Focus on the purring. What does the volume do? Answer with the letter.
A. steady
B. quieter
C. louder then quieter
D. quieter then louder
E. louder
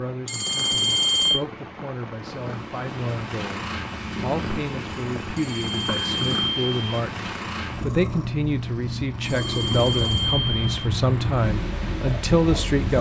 A.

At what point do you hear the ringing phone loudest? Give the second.
1 s.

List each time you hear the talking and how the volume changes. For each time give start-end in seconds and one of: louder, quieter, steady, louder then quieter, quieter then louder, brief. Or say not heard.
0.0-12.9 louder.